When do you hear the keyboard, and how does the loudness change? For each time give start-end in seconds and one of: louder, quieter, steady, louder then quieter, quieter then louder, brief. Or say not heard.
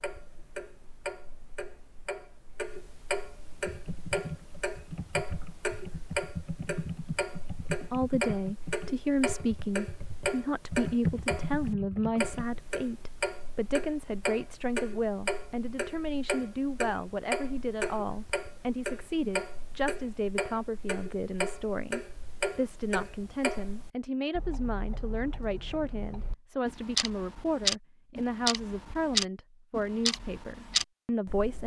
3.6-12.4 quieter then louder.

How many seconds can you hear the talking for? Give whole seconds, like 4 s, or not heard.
24 s.